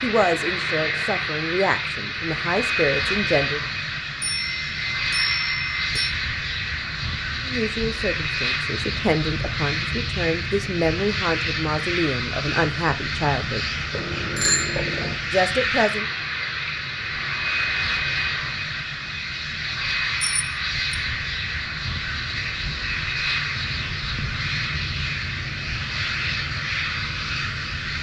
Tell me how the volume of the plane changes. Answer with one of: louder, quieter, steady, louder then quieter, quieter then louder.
steady.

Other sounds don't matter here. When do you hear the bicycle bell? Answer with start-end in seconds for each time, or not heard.
4.2-6.1, 13.9-15.2, 20.2-20.9.